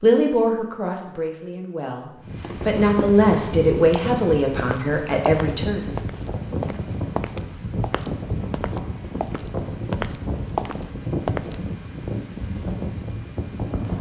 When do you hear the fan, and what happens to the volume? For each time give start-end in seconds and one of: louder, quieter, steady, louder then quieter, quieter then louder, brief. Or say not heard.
2.2-13.9 steady.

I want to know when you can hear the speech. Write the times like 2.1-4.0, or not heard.
0.0-5.8.